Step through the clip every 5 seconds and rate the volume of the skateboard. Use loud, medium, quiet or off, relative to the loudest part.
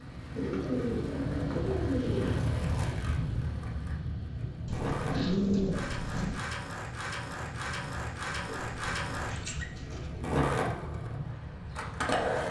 medium, medium, loud.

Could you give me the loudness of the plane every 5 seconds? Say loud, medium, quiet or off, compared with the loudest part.
loud, medium, medium.